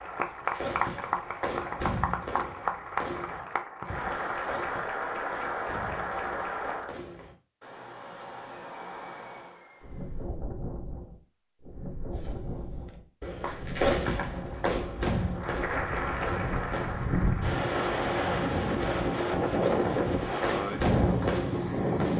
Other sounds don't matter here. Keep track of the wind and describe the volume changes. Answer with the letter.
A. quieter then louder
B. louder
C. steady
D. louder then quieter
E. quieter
B.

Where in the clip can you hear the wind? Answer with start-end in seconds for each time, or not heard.
9.8-22.1.